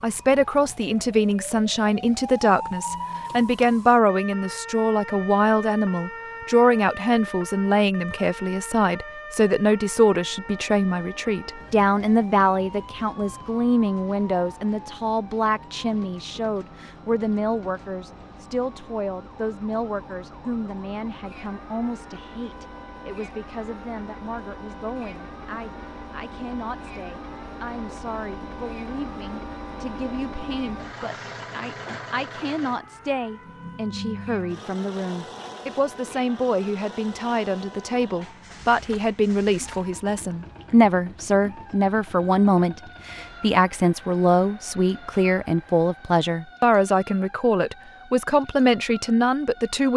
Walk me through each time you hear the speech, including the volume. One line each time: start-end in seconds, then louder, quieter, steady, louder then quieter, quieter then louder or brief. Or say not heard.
0.0-49.9 quieter then louder.